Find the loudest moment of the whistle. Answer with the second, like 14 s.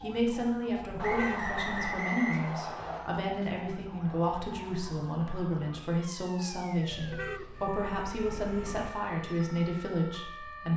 2 s.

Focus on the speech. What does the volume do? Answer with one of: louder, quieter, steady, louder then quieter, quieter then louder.
steady.